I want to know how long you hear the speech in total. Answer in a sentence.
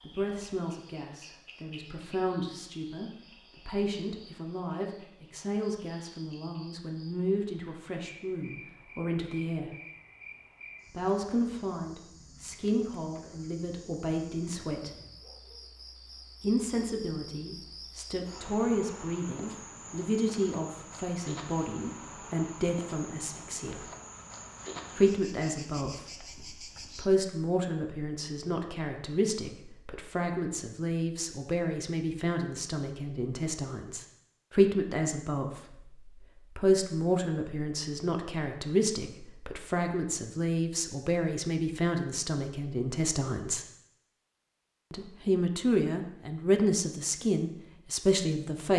The speech can be heard for 44 seconds in total.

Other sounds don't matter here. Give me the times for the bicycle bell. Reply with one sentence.
The bicycle bell can't be heard in this clip.